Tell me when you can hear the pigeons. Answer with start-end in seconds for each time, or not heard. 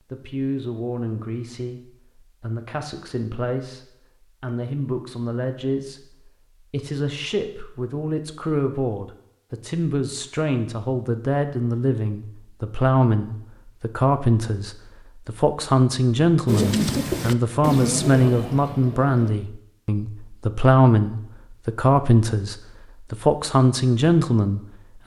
16.4-19.4.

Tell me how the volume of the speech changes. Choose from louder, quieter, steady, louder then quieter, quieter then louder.
louder.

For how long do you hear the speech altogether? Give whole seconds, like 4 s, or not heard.
25 s.